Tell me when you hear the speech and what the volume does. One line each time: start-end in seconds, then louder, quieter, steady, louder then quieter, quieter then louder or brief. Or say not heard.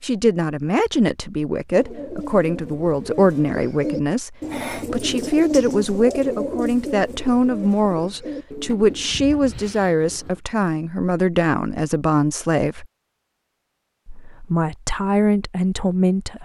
0.0-12.8 steady
14.1-16.4 brief.